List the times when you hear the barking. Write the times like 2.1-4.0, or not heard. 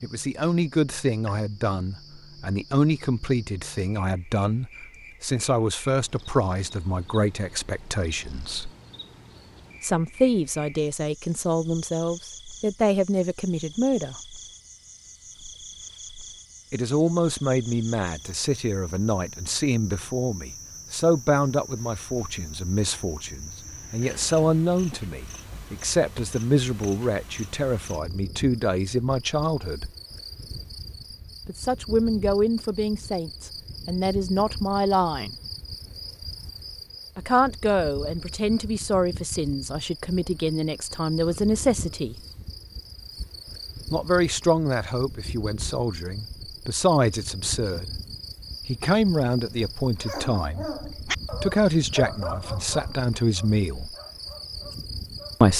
50.0-55.5.